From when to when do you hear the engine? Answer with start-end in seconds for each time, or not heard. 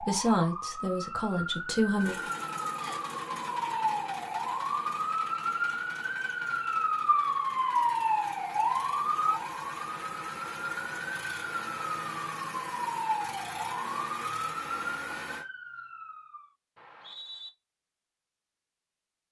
1.9-15.4.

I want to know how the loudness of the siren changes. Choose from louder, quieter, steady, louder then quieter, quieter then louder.
louder then quieter.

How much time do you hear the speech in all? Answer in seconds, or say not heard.
2 s.